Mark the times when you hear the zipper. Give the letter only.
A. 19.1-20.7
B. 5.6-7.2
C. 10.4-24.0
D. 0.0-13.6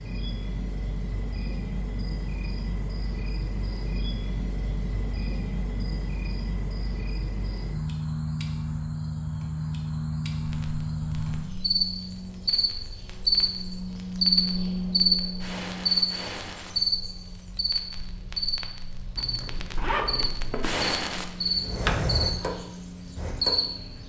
A.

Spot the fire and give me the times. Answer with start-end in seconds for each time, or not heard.
10.4-24.0.